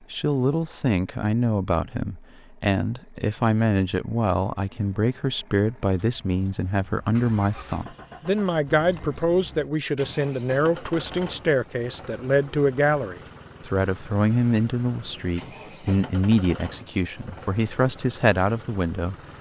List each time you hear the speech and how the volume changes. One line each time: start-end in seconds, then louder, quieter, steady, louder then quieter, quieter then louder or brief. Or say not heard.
0.1-19.1 steady.